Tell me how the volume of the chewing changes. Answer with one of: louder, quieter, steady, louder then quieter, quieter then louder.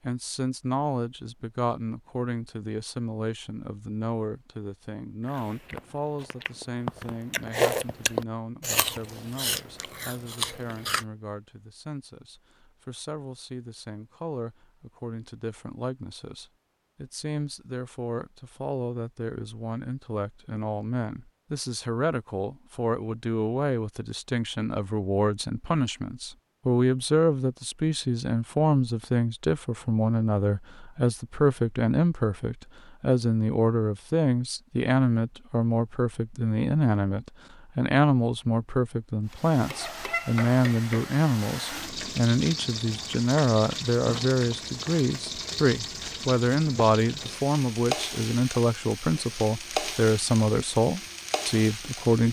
louder then quieter.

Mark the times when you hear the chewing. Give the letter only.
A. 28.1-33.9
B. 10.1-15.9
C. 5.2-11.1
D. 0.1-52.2
C.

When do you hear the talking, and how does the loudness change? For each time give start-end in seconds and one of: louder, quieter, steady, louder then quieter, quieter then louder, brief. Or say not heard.
0.1-52.2 louder.